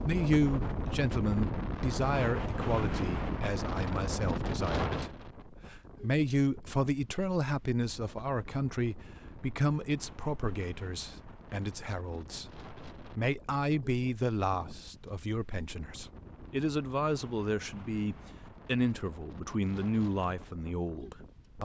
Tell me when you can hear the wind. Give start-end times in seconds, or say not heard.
0.0-21.5.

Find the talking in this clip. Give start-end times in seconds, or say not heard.
0.0-21.5.